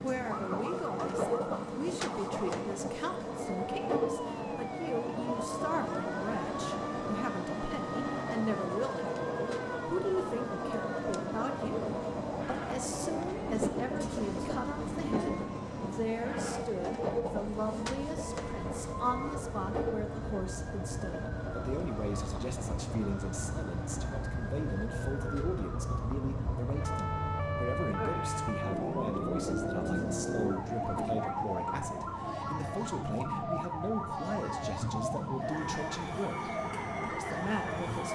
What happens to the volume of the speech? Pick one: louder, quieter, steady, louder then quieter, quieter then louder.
steady.